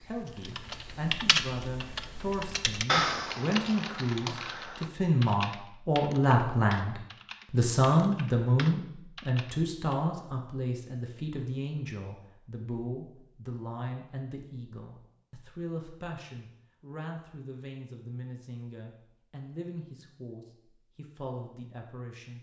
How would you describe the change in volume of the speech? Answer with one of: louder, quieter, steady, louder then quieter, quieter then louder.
louder then quieter.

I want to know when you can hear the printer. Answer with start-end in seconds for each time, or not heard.
not heard.